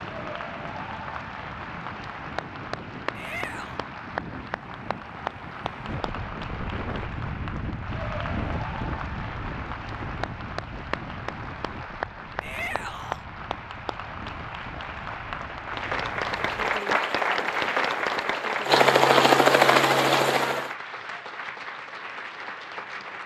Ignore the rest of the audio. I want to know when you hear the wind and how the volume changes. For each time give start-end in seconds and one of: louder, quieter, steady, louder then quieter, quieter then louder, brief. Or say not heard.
0.0-16.9 louder then quieter.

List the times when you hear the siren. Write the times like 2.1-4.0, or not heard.
not heard.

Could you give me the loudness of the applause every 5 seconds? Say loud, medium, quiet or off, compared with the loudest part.
medium, medium, medium, loud, medium.